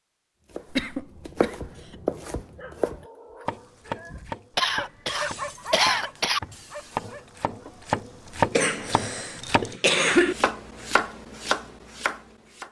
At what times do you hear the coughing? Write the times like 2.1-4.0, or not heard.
0.7-1.9, 4.5-6.4, 8.5-10.3.